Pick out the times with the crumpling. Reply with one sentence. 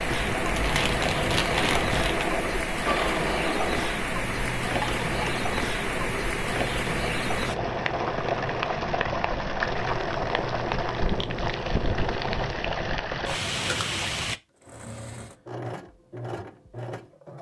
You can hear the crumpling from 0.1 to 2.3 s.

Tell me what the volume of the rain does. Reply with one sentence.
The volume of the rain stays about the same.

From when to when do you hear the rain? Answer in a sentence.
You can hear the rain from 0.0 to 14.4 s.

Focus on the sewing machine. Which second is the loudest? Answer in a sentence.
The volume of the sewing machine peaks at 3 seconds.